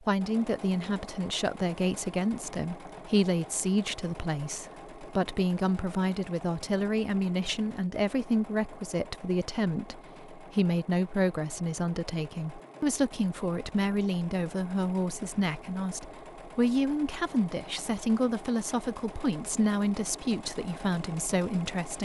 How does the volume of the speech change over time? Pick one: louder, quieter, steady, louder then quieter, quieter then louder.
steady.